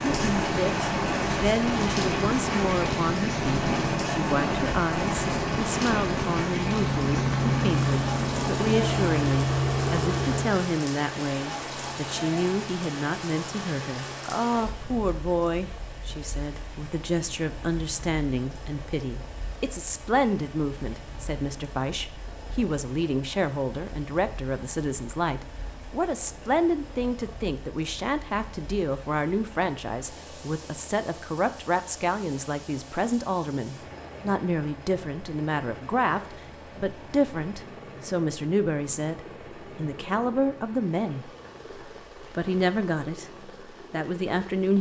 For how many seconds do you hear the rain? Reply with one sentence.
The rain can be heard for 45 seconds in total.